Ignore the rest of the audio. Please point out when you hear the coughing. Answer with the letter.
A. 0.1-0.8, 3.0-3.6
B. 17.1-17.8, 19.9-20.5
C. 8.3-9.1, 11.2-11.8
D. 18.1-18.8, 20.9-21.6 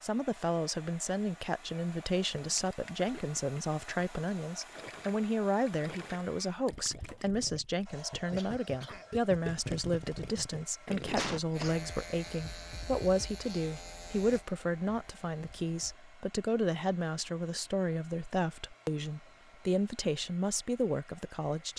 C.